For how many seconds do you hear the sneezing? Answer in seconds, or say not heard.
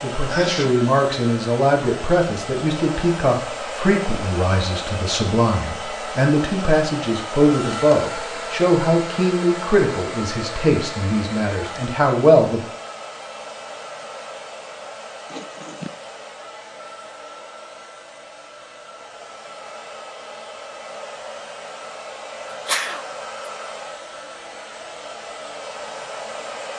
2 s.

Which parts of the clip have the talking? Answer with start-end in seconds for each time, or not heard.
0.0-12.6.